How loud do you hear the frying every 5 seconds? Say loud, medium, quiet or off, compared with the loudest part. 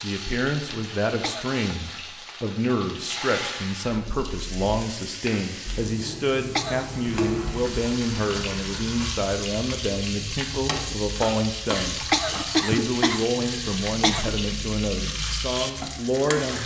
medium, loud, loud, loud.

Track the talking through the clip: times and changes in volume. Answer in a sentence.
The talking can be heard from 0.0 to 16.6 s, at a steady volume.